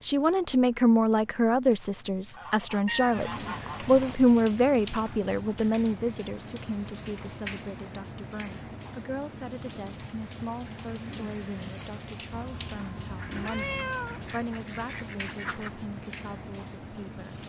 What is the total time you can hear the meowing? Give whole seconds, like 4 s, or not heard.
3 s.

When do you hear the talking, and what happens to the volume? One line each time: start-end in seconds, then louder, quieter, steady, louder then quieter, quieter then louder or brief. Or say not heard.
0.0-17.4 quieter.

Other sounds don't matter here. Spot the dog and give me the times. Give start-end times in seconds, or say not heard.
not heard.